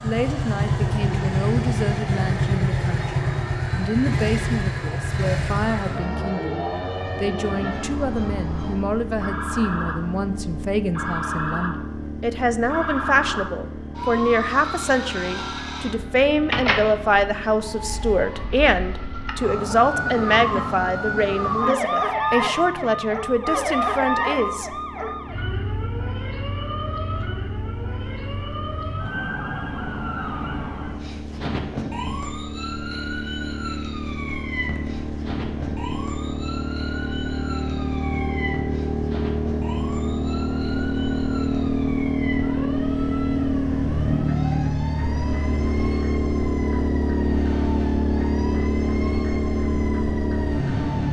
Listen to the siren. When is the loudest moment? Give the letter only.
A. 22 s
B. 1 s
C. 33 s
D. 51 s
A.